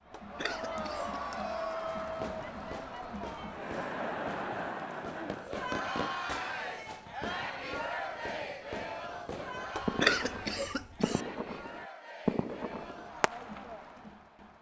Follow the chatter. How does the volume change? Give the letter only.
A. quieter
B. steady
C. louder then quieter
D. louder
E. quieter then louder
A.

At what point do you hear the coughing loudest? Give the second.
10 s.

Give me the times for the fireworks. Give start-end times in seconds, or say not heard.
2.0-13.6.